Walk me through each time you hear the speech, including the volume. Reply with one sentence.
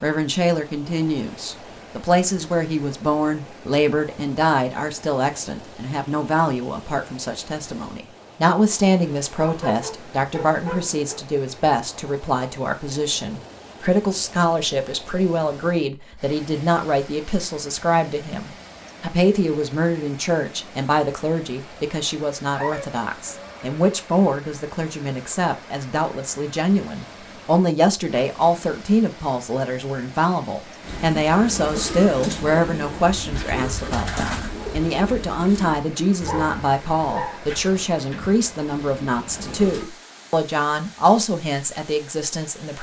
You can hear the speech from 0.0 to 42.7 s, at a steady volume.